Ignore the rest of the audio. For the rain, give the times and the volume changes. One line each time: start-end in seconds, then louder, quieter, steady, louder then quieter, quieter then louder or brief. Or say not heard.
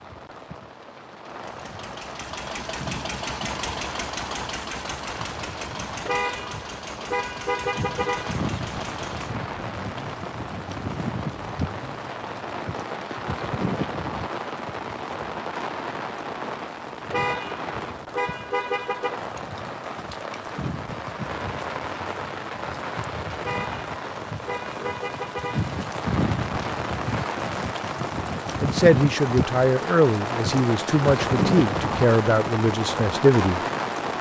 0.0-34.1 louder.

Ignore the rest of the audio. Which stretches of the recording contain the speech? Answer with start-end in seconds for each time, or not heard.
28.6-33.6.